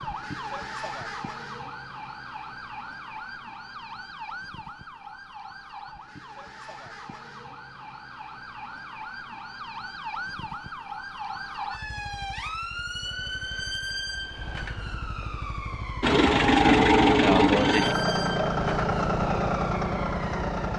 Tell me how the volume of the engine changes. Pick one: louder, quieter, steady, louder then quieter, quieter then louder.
quieter.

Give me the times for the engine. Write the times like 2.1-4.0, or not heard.
16.0-20.7.